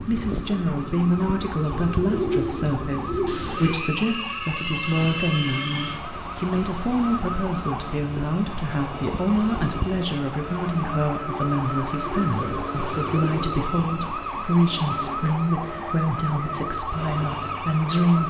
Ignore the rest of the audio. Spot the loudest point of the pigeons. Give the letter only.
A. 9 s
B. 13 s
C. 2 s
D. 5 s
C.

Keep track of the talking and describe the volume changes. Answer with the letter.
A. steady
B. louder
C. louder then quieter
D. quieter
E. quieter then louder
A.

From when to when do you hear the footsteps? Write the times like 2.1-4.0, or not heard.
not heard.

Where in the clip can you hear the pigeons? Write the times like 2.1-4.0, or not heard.
1.9-3.8, 12.1-13.8.